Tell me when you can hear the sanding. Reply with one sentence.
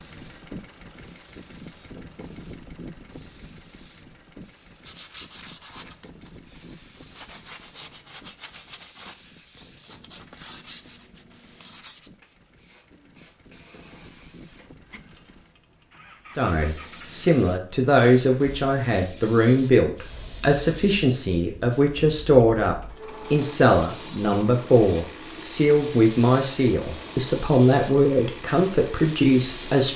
The sanding can be heard from 4.8 to 12.1 s.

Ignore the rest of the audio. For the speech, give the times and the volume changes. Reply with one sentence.
The speech can be heard from 16.4 to 29.9 s, at a steady volume.